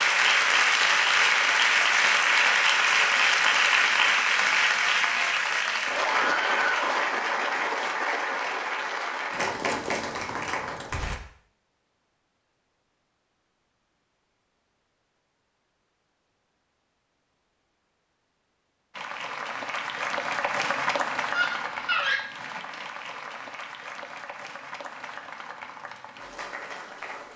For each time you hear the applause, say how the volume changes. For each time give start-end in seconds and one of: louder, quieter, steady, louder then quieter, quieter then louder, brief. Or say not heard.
0.0-11.2 quieter
18.9-27.3 quieter.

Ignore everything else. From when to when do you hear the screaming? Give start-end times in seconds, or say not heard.
6.0-6.8, 21.3-22.2.